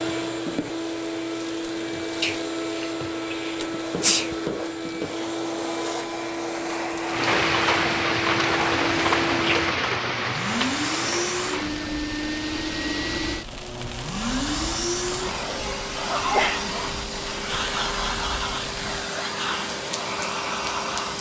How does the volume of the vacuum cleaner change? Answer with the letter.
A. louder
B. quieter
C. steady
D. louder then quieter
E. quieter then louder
C.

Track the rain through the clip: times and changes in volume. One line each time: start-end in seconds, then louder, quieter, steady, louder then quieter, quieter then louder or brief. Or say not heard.
7.0-21.1 quieter.